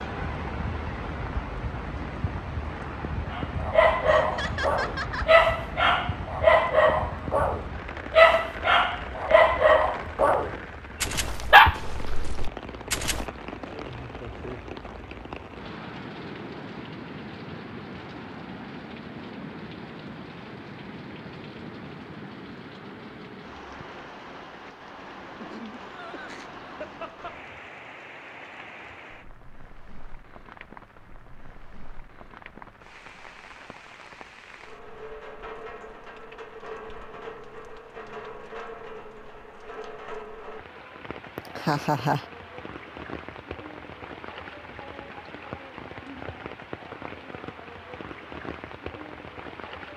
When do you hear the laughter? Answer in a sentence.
The laughter can be heard from 4.0 to 5.3 s, from 25.4 to 27.4 s and from 41.5 to 42.2 s.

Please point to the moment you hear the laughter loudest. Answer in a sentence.
The loudest moment of the laughter is at 42 seconds.